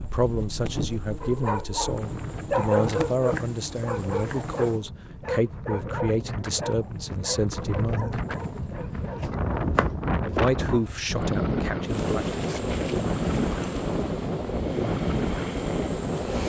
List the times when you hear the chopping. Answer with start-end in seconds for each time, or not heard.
3.2-4.8, 8.6-10.9.